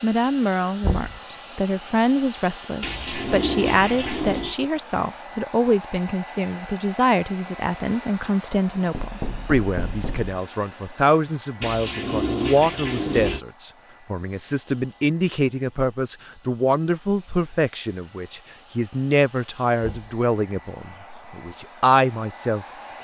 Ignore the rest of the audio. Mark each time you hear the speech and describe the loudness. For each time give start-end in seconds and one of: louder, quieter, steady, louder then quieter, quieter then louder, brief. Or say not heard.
0.0-23.0 steady.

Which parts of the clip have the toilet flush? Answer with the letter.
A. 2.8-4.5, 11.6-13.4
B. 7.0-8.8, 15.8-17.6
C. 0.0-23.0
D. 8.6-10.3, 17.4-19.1
A.